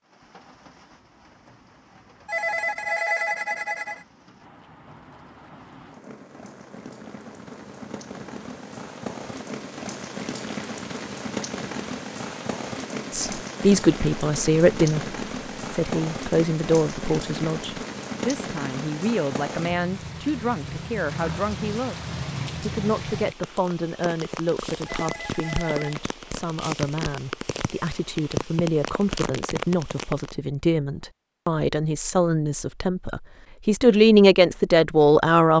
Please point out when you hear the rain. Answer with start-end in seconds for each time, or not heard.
0.0-30.4.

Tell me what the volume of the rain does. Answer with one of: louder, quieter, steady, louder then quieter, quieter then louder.
louder.